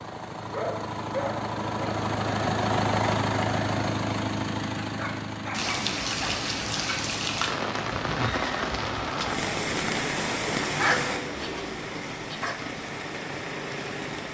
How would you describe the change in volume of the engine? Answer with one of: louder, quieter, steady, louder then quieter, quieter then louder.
quieter.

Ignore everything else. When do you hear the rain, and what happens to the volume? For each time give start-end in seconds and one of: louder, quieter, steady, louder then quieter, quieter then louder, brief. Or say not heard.
5.5-14.2 quieter.